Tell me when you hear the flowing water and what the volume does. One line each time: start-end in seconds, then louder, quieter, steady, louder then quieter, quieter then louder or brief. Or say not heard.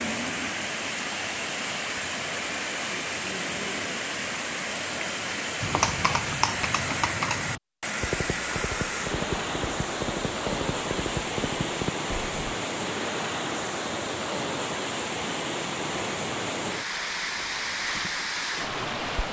0.0-19.2 steady.